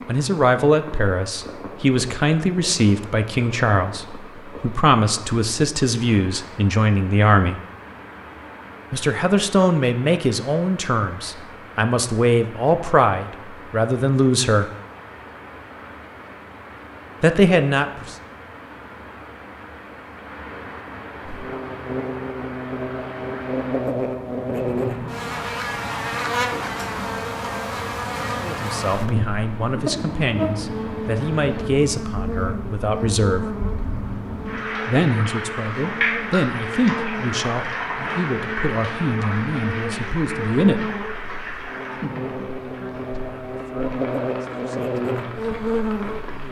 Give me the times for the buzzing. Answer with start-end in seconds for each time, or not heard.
21.2-46.4.